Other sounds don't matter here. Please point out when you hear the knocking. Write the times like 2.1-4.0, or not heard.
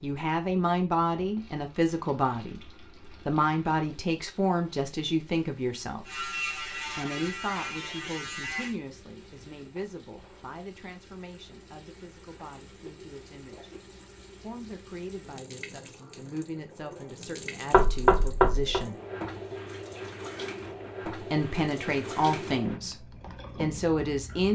17.7-18.9.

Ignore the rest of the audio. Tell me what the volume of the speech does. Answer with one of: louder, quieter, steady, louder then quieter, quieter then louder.
quieter then louder.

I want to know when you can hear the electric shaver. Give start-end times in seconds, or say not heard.
6.0-8.8.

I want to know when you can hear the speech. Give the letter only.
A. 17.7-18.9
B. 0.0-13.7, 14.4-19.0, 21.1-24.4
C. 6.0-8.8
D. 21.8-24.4
B.